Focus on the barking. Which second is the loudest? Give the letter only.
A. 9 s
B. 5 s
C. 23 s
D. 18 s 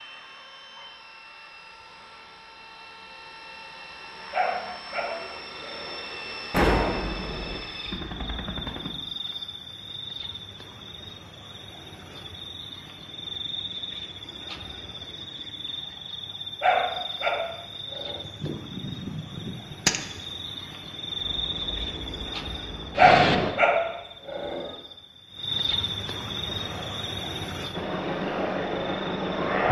C.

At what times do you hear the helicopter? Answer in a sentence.
The helicopter can be heard from 0.0 to 8.9 s, from 21.2 to 23.6 s and from 26.5 to 29.6 s.